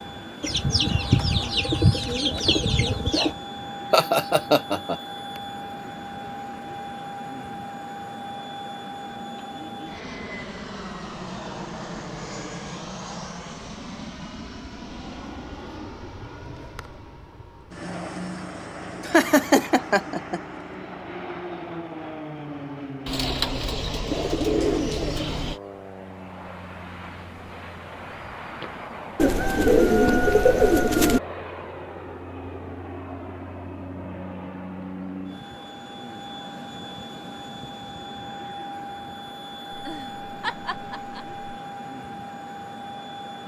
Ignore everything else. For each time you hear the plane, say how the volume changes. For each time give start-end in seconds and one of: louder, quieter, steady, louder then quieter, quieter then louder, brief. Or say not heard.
0.0-43.4 steady.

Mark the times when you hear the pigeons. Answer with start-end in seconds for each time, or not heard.
0.4-3.4, 23.1-25.6, 29.1-31.2.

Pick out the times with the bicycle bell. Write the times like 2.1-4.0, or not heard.
not heard.